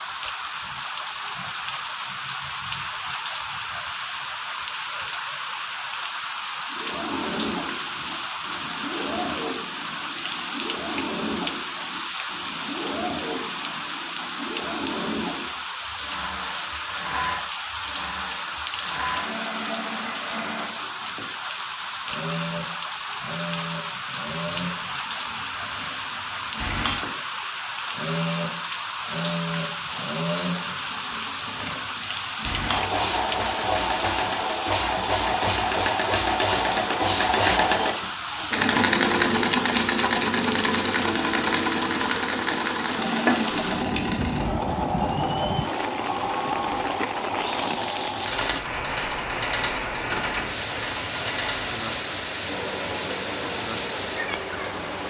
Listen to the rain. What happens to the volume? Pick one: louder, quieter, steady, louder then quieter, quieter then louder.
steady.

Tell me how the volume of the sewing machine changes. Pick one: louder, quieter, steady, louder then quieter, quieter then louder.
louder then quieter.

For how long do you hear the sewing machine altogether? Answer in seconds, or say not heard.
48 s.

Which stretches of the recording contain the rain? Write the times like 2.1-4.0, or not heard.
0.0-55.0.